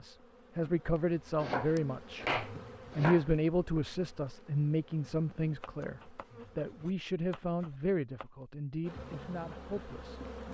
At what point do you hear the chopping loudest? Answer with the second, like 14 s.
2 s.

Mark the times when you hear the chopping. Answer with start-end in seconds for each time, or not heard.
1.4-3.2, 5.6-8.2.